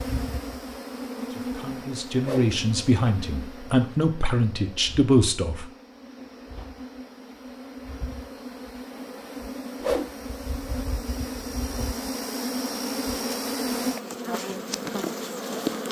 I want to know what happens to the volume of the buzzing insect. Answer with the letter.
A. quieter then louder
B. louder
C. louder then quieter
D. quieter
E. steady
A.